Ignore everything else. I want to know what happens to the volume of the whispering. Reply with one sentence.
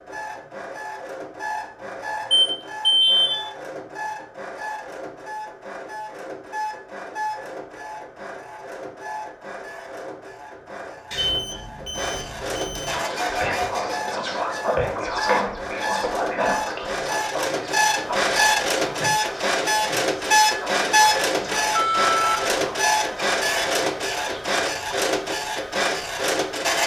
The loudness of the whispering goes down.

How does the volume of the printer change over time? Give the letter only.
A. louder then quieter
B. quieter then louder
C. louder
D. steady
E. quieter
C.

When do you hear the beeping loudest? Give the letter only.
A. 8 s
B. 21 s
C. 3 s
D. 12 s
C.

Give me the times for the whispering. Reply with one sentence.
You can hear the whispering from 12.8 to 24.6 s.